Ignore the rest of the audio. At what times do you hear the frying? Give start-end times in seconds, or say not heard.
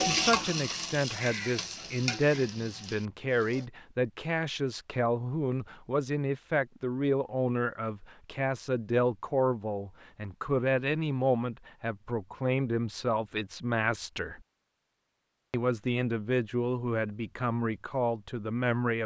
0.0-3.7.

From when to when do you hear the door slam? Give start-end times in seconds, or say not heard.
not heard.